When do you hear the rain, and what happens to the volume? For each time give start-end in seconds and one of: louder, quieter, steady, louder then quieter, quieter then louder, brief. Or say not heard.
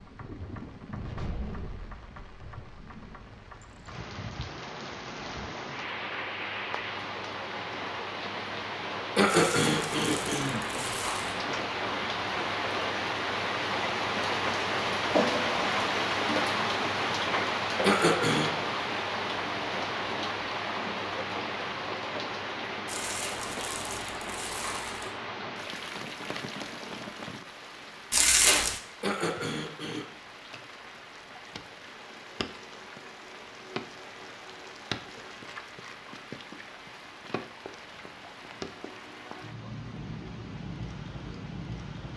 0.0-42.1 louder then quieter.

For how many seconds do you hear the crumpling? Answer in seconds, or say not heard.
5 s.